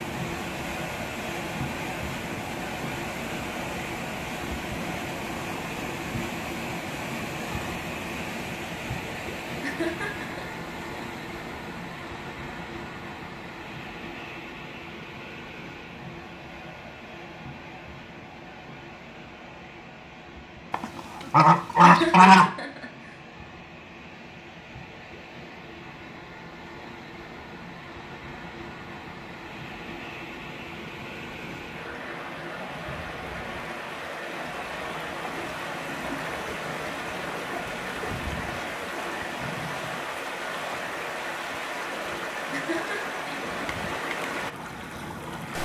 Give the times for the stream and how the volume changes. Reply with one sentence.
You can hear the stream from 0.0 to 45.6 s, getting quieter then louder.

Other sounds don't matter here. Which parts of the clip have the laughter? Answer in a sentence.
You can hear the laughter from 9.6 to 10.5 s, from 21.8 to 23.1 s and from 42.5 to 43.4 s.